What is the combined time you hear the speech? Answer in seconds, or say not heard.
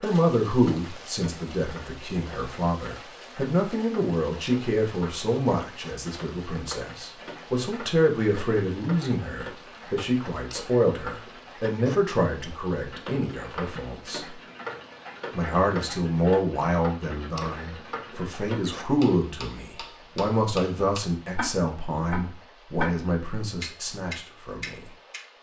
24 s.